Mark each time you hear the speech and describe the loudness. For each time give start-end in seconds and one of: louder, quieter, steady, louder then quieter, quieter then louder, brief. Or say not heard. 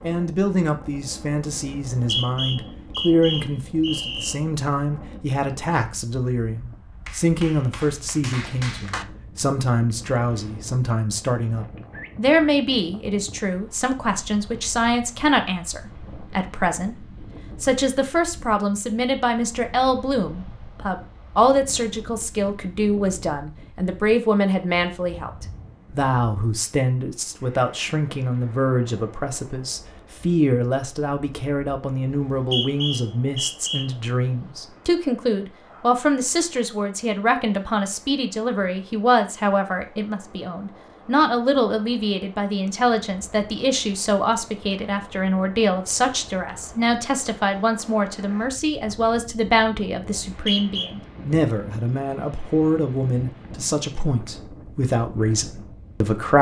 0.0-56.3 steady.